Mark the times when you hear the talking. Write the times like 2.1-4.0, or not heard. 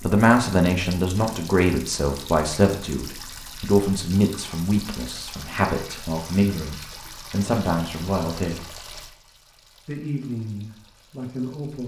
0.0-8.7, 9.8-11.8.